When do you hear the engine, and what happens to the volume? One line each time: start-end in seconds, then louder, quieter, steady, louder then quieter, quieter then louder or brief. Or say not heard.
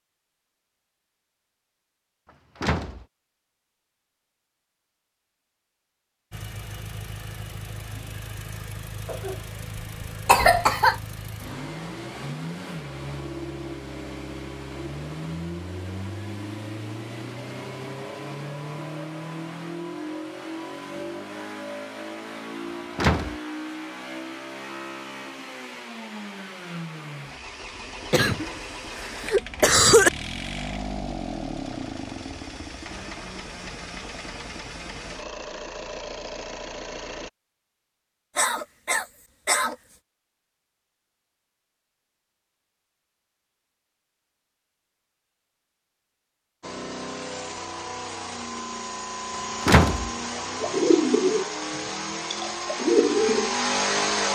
6.3-37.3 steady
46.6-54.2 louder.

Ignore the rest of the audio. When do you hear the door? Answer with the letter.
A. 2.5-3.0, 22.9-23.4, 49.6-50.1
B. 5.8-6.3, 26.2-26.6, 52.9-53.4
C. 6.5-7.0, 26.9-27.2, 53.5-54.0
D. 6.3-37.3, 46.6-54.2
A.